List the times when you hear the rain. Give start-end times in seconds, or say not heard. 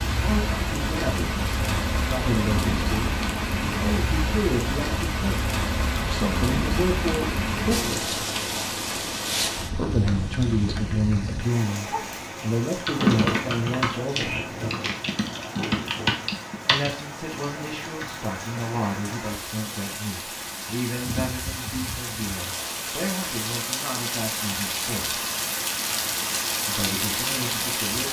0.0-28.0.